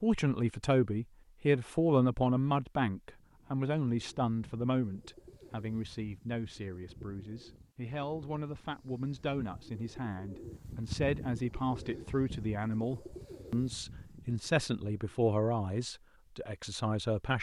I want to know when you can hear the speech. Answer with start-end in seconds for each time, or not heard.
0.0-17.3.